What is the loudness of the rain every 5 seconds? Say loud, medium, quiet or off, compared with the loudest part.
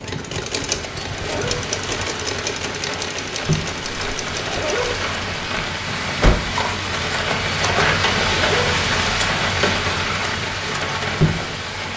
medium, loud, loud.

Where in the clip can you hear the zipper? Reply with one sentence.
You can hear the zipper from 0.9 to 1.6 s, from 4.3 to 4.9 s and from 8.1 to 8.7 s.